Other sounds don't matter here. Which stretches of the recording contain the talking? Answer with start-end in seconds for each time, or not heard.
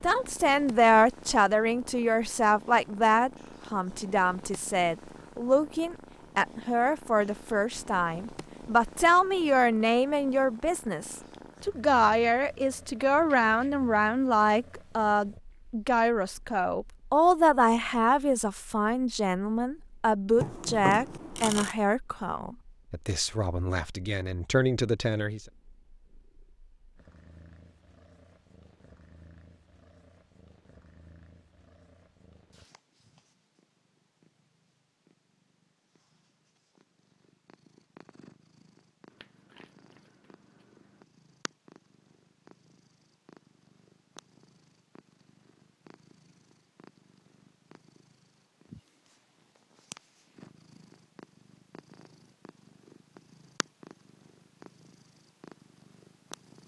0.0-25.4.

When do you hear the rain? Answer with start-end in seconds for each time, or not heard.
not heard.